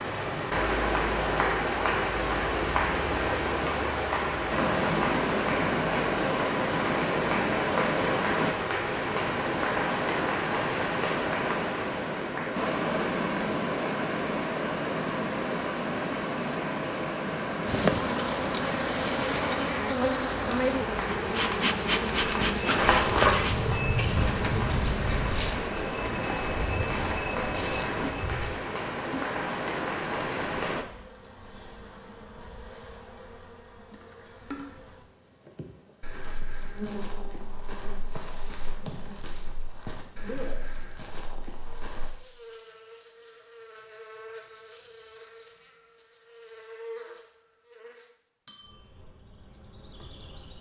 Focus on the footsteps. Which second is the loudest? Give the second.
23 s.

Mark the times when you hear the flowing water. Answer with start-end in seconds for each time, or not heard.
0.0-30.9.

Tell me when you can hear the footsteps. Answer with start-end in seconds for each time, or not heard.
22.2-28.5, 36.0-42.1.